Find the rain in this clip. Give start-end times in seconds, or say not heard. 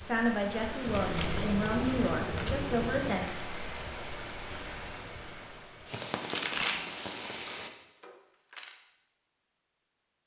0.0-7.7.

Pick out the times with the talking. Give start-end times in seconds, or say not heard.
0.0-3.2.